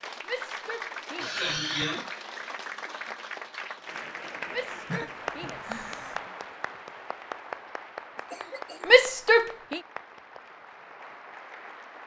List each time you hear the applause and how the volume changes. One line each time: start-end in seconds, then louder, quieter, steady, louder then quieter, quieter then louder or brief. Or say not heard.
0.0-12.0 quieter.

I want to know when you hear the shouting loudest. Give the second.
9 s.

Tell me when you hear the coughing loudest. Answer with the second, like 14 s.
2 s.